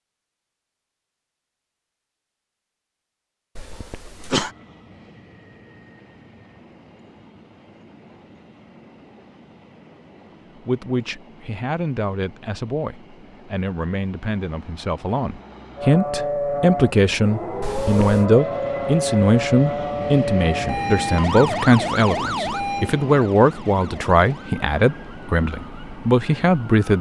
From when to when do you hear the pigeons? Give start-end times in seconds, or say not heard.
not heard.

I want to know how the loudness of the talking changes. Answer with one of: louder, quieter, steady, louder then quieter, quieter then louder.
louder.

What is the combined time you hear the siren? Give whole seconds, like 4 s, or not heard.
11 s.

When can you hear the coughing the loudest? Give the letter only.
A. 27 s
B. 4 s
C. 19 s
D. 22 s
B.